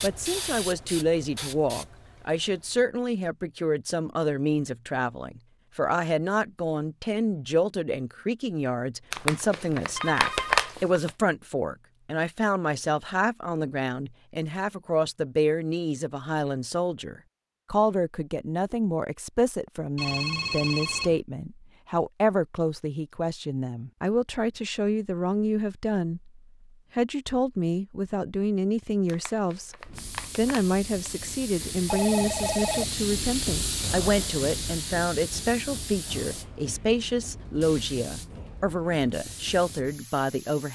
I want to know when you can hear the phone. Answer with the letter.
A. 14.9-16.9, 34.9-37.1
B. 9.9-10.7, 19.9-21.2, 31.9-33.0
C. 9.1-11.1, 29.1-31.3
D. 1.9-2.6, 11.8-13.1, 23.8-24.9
B.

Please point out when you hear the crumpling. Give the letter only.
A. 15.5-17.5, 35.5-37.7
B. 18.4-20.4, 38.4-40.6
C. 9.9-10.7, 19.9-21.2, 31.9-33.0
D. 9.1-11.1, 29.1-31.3
D.